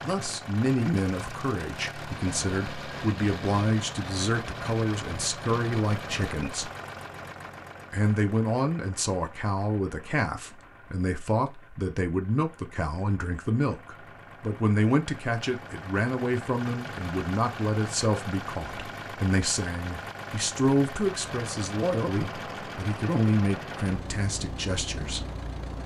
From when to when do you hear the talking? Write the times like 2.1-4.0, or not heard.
0.0-6.7, 7.9-25.2.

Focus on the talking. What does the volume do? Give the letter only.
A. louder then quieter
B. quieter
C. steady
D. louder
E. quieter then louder
C.